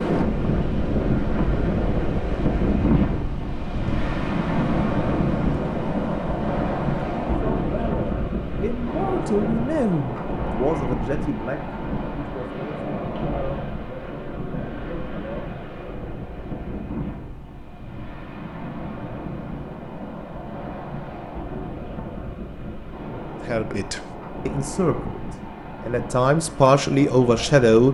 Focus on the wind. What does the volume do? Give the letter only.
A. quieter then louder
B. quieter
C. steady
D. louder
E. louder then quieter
B.